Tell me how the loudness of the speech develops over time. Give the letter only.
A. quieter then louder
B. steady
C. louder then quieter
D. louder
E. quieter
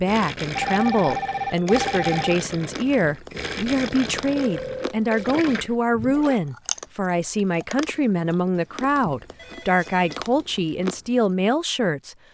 B.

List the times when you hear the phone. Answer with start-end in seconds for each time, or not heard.
0.6-2.4, 4.3-5.3, 9.3-10.2.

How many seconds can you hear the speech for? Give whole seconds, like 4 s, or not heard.
12 s.